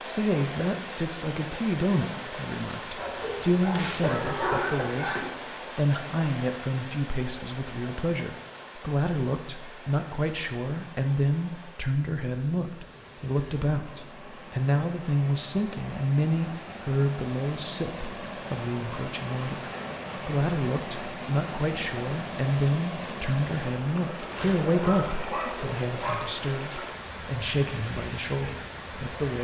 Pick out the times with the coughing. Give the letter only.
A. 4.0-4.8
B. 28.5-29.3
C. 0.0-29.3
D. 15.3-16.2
A.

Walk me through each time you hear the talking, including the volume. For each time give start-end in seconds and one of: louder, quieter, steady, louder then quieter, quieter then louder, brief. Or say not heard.
0.0-29.3 steady.